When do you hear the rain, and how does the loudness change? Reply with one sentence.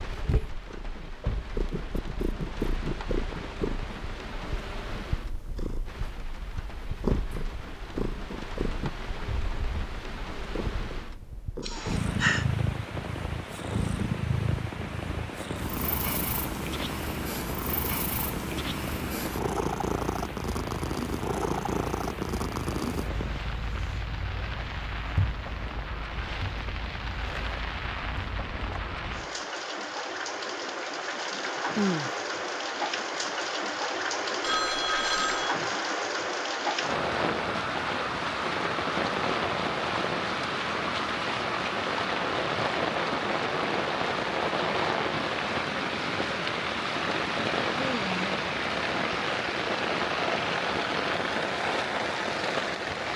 The rain can be heard from 0.0 to 53.1 s, getting louder.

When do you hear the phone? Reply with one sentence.
You can hear the phone from 34.4 to 35.5 s.